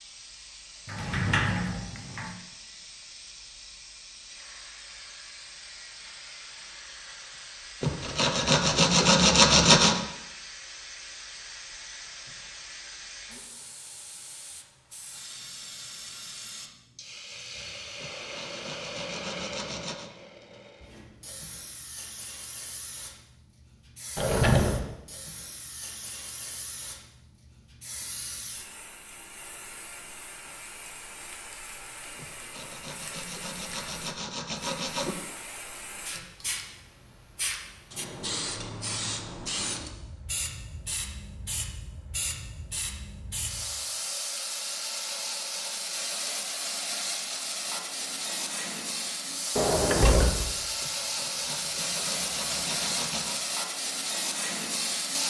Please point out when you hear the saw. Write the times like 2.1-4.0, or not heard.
7.8-10.0, 18.0-20.1, 32.1-35.1, 50.8-53.4.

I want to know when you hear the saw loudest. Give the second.
10 s.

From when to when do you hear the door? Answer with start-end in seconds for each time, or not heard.
0.8-2.4, 24.1-24.9, 49.5-50.5.